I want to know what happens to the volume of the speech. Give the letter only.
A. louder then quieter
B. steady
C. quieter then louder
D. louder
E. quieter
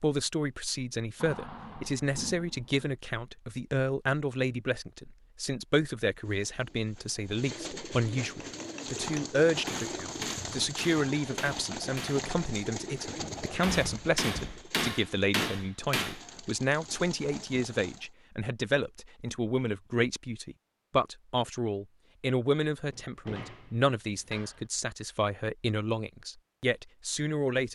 B.